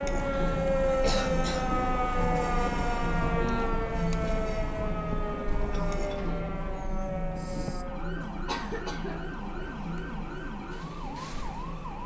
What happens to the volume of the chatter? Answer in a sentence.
The volume of the chatter goes down.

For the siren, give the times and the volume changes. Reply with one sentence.
The siren can be heard from 0.0 to 12.0 s, getting quieter.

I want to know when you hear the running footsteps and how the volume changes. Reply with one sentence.
You can't hear the running footsteps here.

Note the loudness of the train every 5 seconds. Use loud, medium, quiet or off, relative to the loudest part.
loud, medium, medium.